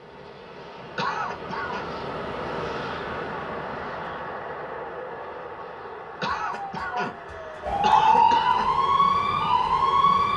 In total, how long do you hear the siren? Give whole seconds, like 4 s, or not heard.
4 s.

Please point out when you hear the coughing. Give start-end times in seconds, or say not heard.
0.9-1.9, 6.2-8.7.